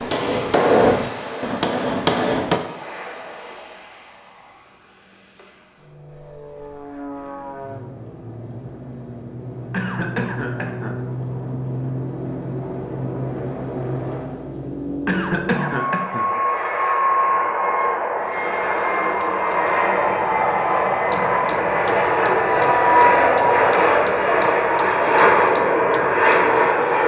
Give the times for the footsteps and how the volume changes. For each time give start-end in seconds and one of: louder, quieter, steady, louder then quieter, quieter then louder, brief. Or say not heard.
not heard.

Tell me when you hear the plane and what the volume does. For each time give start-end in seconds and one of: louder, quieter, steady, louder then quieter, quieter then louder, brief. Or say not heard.
0.0-27.0 louder.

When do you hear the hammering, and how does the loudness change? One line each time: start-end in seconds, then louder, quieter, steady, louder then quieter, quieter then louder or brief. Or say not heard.
0.0-2.6 brief
20.9-26.6 steady.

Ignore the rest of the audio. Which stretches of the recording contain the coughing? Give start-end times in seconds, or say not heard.
9.7-10.9, 15.1-16.2.